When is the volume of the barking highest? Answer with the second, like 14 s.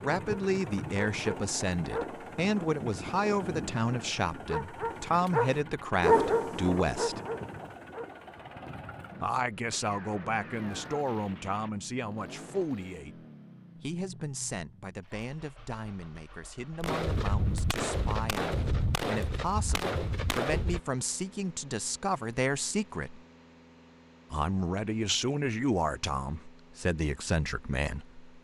6 s.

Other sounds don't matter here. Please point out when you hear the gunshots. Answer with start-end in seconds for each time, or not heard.
9.7-11.7, 16.8-20.8.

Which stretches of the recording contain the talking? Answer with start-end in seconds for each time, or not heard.
0.0-7.2, 9.2-23.2, 24.3-28.2.